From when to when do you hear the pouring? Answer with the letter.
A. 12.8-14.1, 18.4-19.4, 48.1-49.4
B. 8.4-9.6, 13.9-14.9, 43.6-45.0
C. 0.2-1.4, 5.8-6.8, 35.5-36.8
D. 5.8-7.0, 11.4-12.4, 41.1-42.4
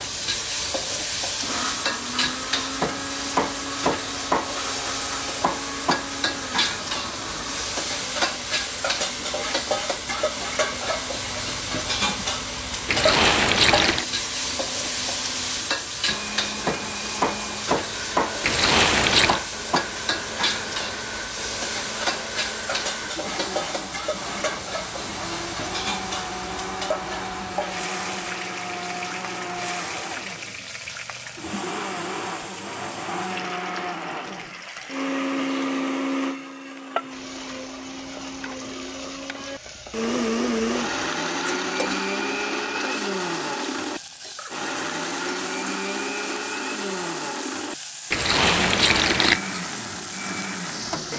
A.